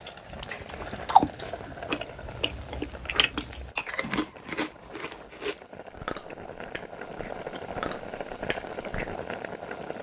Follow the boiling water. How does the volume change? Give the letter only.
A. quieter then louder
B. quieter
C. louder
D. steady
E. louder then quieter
A.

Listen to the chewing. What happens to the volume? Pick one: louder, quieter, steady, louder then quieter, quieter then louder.
quieter.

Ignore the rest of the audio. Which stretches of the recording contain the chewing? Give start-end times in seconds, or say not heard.
0.7-9.2.